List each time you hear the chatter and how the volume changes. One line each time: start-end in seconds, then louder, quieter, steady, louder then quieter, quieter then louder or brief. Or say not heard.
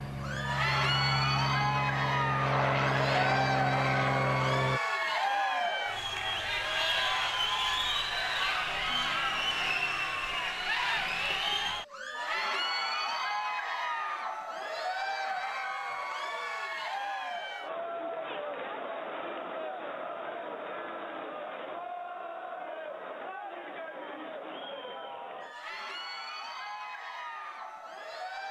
0.1-28.4 quieter.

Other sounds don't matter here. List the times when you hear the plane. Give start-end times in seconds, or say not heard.
0.0-4.8.